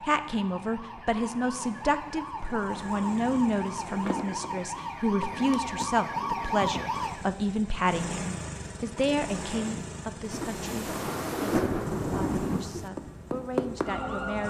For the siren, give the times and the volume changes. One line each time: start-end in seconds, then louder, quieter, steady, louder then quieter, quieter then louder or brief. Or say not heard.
0.0-7.3 louder
12.9-14.4 brief.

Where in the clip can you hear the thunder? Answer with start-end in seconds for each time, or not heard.
10.3-12.9.